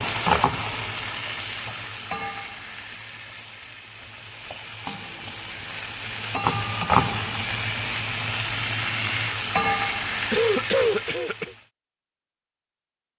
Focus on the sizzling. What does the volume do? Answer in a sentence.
The volume of the sizzling goes down, then up.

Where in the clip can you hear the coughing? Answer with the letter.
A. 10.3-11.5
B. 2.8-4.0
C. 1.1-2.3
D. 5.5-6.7
A.